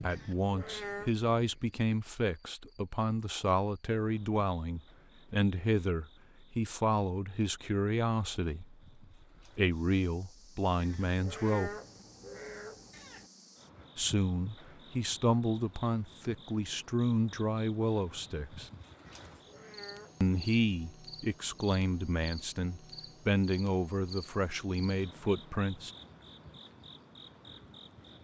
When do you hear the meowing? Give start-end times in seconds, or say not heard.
0.1-1.1, 10.8-13.3, 19.1-20.1.